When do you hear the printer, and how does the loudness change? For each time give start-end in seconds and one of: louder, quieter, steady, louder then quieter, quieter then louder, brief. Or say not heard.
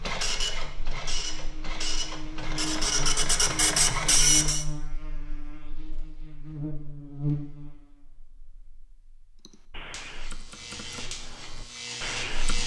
0.0-4.7 louder.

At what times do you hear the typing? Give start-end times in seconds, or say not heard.
9.4-12.6.